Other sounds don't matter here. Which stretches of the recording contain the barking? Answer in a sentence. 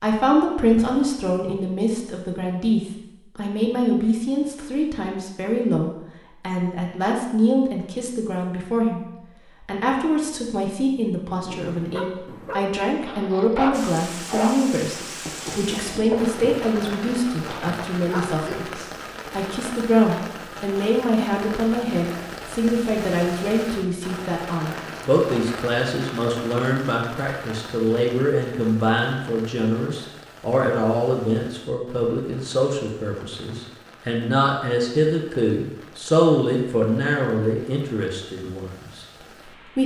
The barking can be heard from 11.3 to 18.7 s.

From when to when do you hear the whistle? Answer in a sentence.
The whistle can't be heard in this clip.